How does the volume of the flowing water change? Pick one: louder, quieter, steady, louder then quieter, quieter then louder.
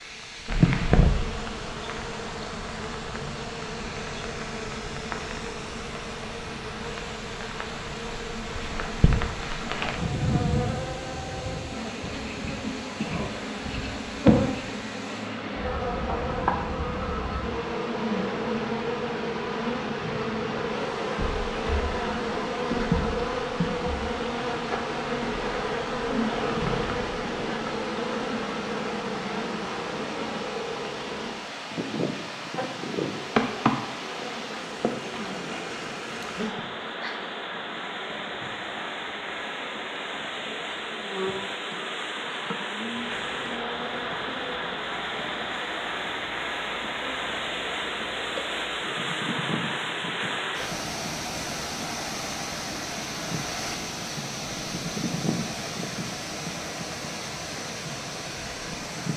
louder.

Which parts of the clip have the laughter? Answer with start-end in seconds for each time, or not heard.
36.5-37.2.